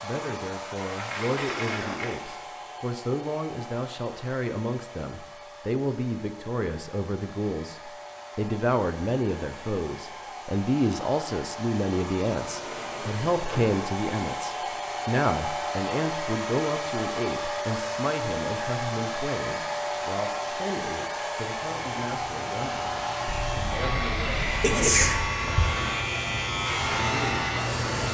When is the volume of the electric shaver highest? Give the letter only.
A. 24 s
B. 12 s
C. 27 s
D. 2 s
C.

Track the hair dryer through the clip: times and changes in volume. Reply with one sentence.
The hair dryer can be heard from 0.0 to 28.0 s, getting louder.